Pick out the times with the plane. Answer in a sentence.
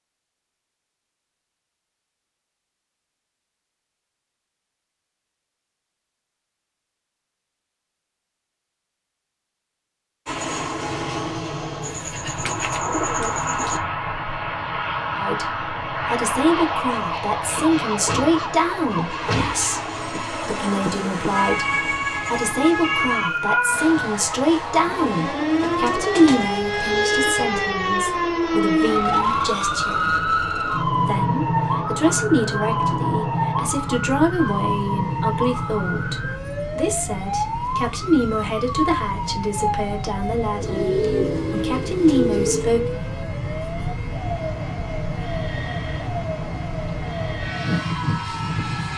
The plane can be heard from 10.2 to 48.9 s.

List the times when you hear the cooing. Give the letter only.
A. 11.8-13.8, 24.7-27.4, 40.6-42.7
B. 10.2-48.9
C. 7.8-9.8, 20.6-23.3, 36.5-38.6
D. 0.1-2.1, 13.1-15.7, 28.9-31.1
A.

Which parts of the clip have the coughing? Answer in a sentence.
You can't hear the coughing here.